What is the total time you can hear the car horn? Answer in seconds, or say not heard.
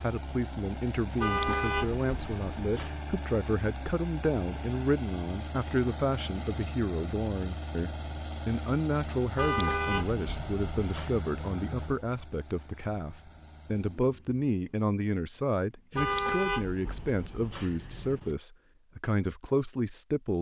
6 s.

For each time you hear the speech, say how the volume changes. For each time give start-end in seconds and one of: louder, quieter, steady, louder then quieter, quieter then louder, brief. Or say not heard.
0.0-20.3 steady.